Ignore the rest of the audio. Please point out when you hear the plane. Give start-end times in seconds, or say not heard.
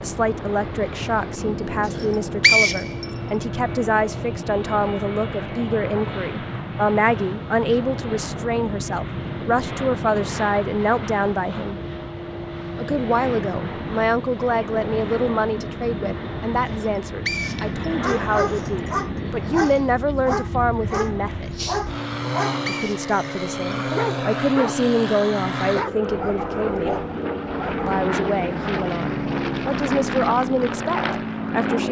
0.0-31.8.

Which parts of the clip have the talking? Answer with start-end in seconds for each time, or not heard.
0.0-11.8, 12.8-21.5, 22.6-26.9, 27.9-31.8.